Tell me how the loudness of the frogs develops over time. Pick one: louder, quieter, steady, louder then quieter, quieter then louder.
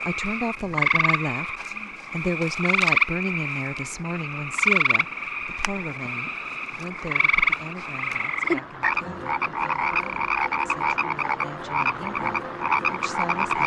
steady.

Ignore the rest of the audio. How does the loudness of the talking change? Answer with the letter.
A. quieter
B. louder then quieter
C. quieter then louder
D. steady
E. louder
A.